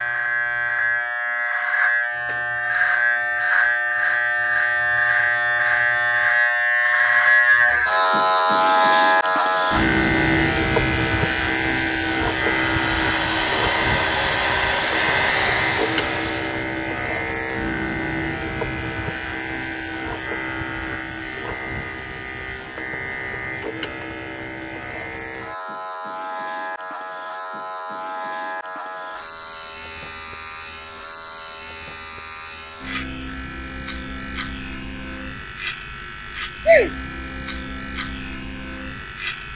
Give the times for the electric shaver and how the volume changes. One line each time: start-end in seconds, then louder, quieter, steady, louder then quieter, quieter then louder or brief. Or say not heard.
0.0-39.5 quieter.